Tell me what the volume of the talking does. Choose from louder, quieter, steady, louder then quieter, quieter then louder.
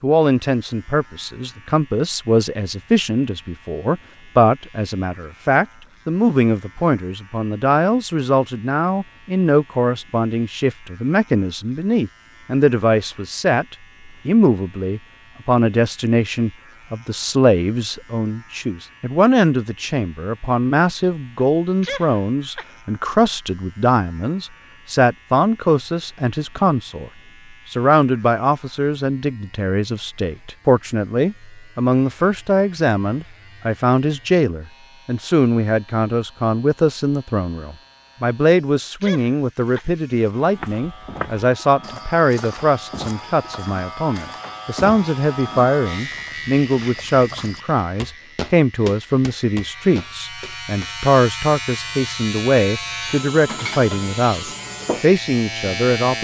steady.